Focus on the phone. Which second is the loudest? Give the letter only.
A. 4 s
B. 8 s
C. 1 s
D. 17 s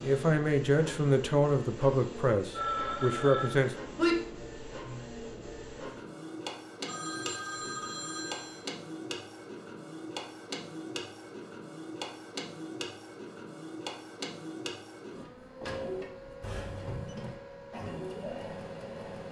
A.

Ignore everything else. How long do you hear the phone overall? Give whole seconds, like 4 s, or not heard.
4 s.